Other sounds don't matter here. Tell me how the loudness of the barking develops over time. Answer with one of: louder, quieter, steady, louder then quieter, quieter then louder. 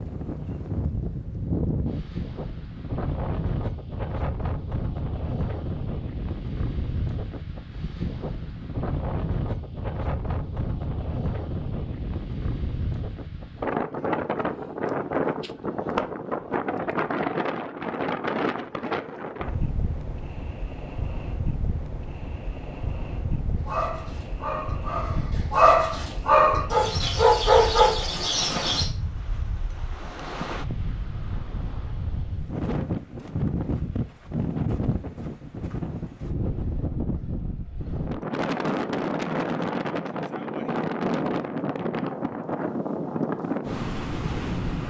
louder.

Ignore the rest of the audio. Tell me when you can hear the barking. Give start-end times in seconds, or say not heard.
23.6-28.9.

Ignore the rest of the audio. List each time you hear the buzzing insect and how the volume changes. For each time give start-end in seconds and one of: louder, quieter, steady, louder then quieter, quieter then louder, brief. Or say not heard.
not heard.